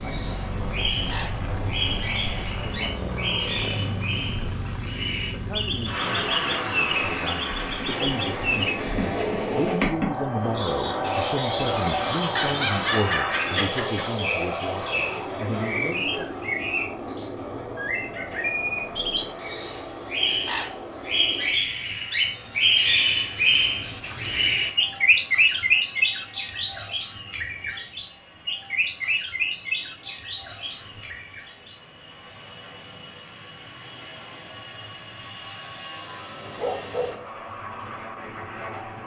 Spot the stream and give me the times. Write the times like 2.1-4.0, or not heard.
not heard.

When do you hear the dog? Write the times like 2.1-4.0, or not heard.
12.3-14.1, 36.5-37.2.